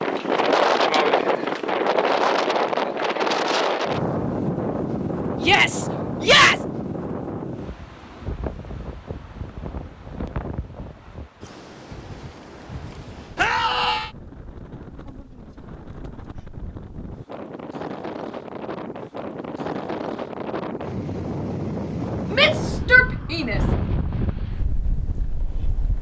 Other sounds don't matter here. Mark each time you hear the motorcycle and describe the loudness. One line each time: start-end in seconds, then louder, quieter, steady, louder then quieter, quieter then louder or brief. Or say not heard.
not heard.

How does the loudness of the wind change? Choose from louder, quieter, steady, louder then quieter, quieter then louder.
quieter then louder.